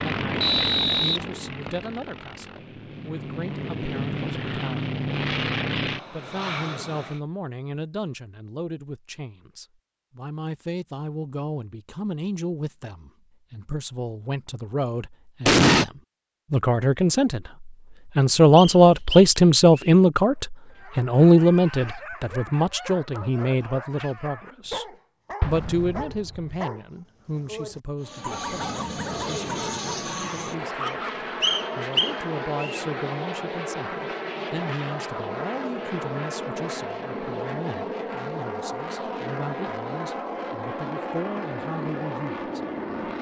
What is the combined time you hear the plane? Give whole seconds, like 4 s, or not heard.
22 s.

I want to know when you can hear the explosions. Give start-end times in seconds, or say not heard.
15.4-15.8, 25.4-26.6.